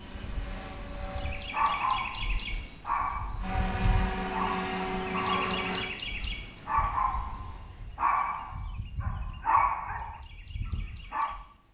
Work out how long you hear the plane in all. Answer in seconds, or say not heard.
4 s.